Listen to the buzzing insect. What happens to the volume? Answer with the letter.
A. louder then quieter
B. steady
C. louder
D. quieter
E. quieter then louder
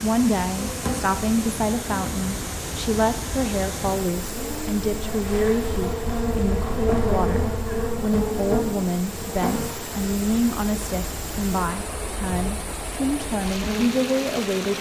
A.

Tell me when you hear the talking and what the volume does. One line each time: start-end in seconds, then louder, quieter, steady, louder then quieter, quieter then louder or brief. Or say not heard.
0.0-14.7 steady.